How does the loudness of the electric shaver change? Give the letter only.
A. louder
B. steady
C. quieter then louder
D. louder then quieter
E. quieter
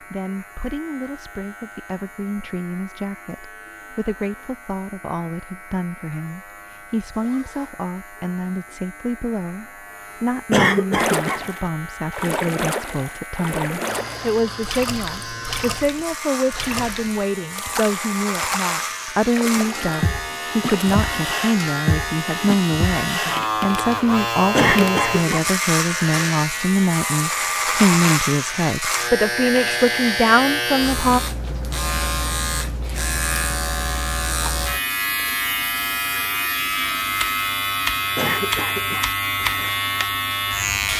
A.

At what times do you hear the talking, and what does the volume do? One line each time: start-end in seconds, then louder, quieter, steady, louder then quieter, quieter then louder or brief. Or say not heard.
0.0-31.2 louder.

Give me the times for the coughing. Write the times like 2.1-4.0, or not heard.
10.5-11.4, 24.5-25.5, 38.1-39.1.